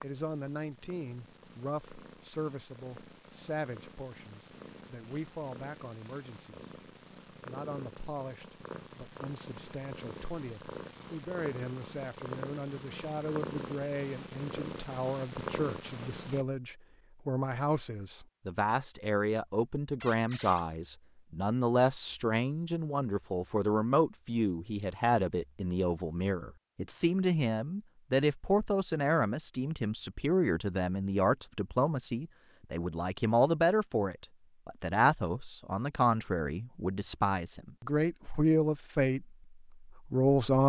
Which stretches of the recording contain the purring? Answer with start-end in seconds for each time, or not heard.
0.0-16.4.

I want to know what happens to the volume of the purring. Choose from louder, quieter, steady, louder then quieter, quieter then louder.
louder.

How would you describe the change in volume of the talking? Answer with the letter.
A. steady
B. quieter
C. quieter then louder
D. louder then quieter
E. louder
E.